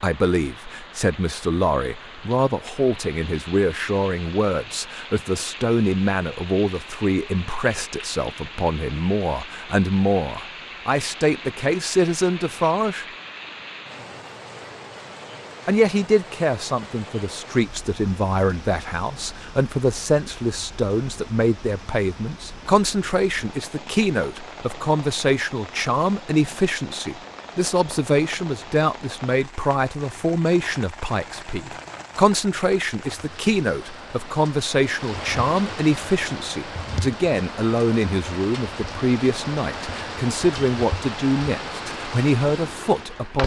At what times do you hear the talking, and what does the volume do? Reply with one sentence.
The talking can be heard from 0.0 to 13.1 s, at a steady volume; and from 15.7 to 43.4 s, at a steady volume.